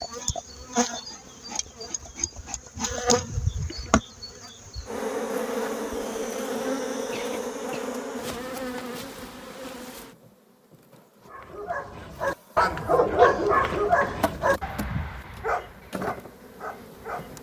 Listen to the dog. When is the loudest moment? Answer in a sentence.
The volume of the dog peaks at 13 seconds.